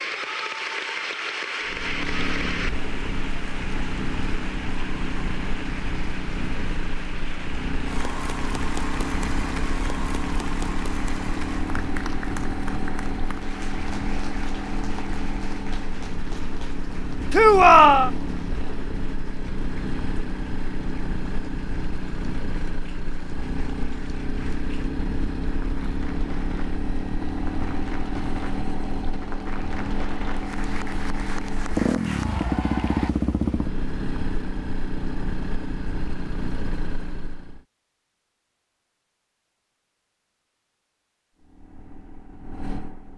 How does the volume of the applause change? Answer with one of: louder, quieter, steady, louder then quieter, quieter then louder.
quieter then louder.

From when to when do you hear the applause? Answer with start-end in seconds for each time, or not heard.
0.0-33.1.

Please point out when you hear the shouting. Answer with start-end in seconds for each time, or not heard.
17.3-18.1.